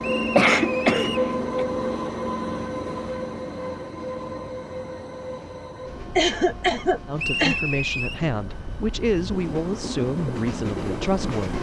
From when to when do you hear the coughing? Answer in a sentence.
You can hear the coughing from 0.3 to 1.6 s and from 6.2 to 7.7 s.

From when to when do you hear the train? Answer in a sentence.
The train can be heard from 0.0 to 11.5 s.